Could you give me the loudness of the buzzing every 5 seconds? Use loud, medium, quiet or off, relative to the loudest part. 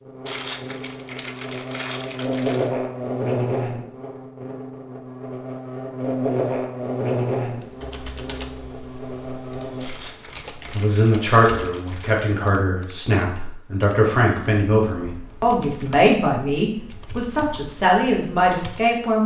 loud, loud, off, off.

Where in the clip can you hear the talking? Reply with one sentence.
The talking can be heard from 10.7 to 19.2 s.